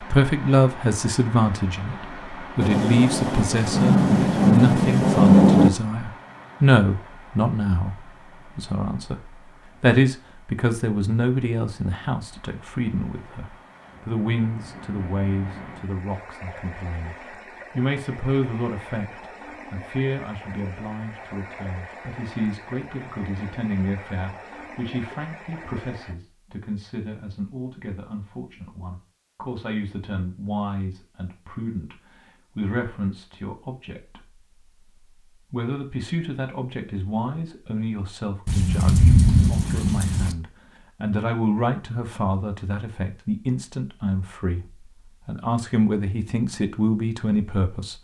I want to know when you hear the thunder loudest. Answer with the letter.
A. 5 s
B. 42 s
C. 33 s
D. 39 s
A.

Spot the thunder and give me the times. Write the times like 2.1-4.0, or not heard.
2.5-5.7, 38.5-40.4.